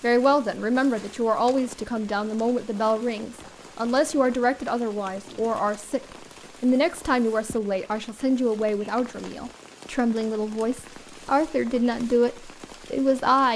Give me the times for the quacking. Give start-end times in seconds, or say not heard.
not heard.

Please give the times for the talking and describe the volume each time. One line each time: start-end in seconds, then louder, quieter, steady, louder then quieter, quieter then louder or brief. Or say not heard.
0.0-13.5 steady.